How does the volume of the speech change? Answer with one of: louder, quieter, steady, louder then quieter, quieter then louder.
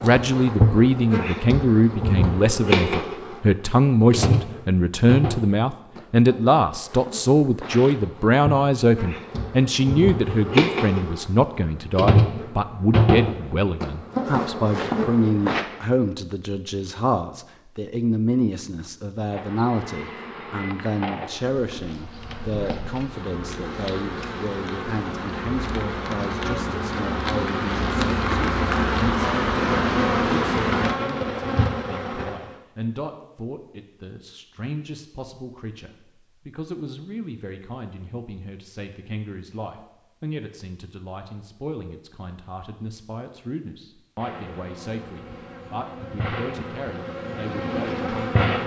quieter.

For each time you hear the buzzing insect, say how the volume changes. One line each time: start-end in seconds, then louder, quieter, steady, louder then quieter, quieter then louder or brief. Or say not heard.
0.0-15.7 quieter then louder
19.3-32.5 louder
44.2-48.6 louder.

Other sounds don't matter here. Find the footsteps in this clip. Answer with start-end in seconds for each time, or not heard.
not heard.